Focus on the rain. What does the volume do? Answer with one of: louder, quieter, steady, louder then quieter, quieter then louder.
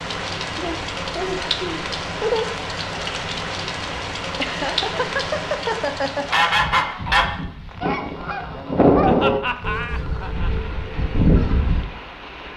quieter.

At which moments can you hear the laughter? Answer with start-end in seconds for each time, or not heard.
0.6-2.5, 4.3-6.5, 9.0-10.7.